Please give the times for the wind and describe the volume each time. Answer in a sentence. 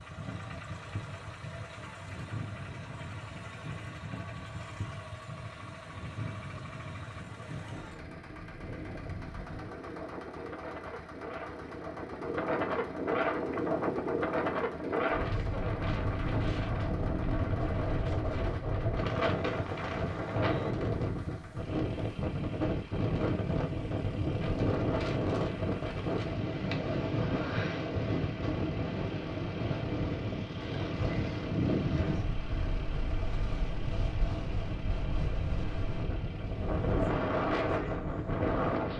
The wind can be heard from 0.0 to 38.9 s, getting louder.